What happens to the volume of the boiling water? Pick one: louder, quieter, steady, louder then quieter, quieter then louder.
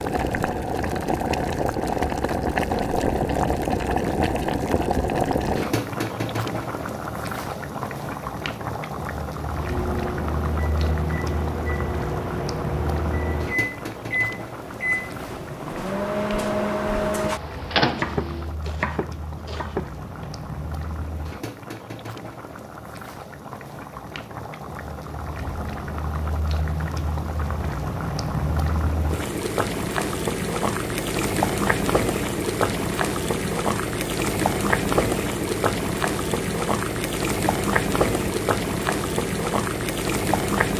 quieter then louder.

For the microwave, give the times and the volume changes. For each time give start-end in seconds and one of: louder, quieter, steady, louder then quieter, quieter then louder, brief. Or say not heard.
9.5-18.5 louder.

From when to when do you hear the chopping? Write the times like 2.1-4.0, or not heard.
17.9-20.4.